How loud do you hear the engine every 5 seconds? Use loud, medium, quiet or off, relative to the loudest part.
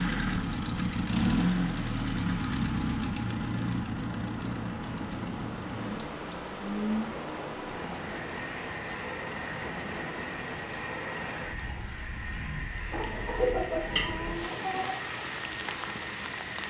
loud, medium, medium, medium.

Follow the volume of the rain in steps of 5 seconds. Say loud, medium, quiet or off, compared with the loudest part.
medium, loud, loud, loud.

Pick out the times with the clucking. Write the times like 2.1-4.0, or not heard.
12.9-14.9.